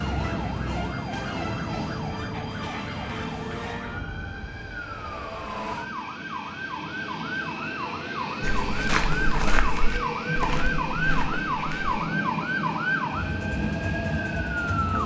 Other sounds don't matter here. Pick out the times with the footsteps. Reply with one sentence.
You can hear the footsteps from 8.4 to 11.9 s.